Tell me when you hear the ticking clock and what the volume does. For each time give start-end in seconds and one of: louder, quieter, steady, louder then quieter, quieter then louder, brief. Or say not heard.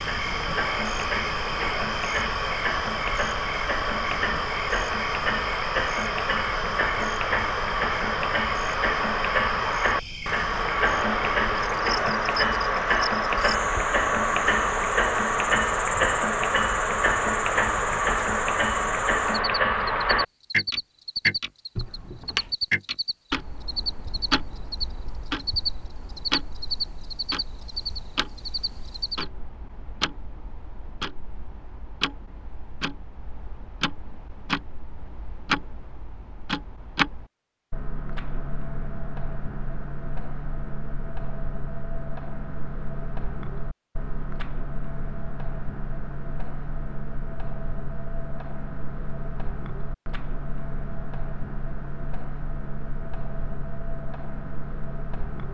0.0-55.4 quieter.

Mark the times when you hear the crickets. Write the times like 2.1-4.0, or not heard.
0.0-29.2.